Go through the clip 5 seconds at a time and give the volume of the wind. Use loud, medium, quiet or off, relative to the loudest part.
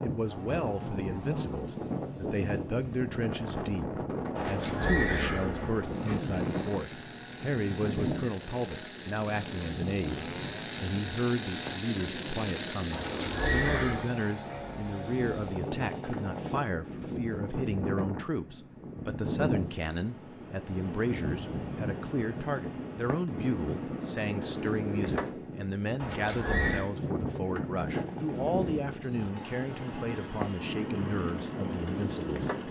loud, loud, medium, loud, loud, loud, loud.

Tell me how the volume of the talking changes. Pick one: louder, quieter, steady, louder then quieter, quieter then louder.
steady.